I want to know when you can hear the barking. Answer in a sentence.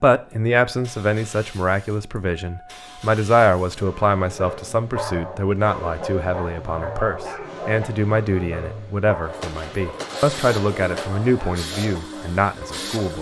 The barking can be heard from 4.2 to 13.1 s.